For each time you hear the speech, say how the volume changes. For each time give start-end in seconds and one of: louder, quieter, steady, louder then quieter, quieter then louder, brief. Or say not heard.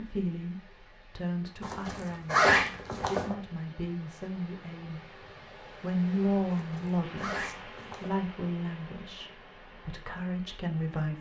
0.0-11.1 louder then quieter.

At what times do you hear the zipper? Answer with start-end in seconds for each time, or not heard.
1.6-3.4, 6.5-8.2.